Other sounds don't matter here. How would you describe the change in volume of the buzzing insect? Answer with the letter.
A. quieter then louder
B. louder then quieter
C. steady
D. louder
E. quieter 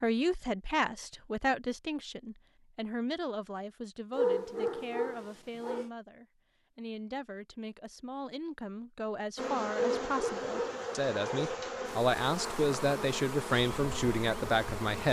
C.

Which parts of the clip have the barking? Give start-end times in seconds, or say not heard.
4.2-5.9, 9.8-11.6.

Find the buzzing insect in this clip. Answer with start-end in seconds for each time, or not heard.
9.3-15.0.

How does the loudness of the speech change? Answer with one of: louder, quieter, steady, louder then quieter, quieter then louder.
quieter then louder.